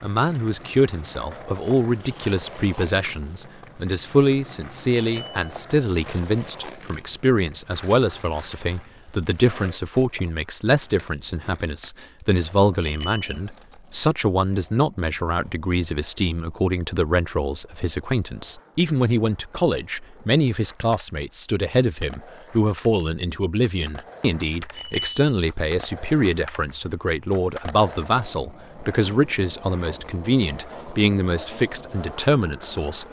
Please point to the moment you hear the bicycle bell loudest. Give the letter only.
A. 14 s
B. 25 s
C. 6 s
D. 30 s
B.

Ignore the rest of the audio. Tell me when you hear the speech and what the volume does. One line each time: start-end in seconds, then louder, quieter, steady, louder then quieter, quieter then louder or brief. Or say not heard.
0.0-33.0 steady.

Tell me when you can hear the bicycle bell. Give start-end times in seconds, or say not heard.
5.0-5.4, 12.8-13.3, 24.8-25.2.